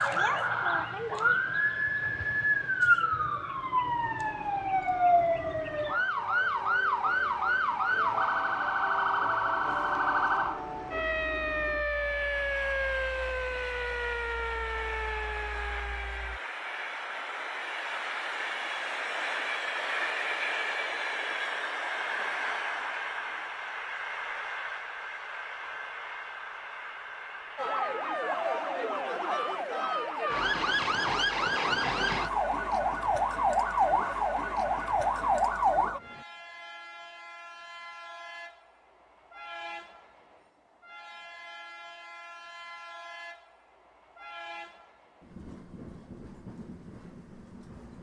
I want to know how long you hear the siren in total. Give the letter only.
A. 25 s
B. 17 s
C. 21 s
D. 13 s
A.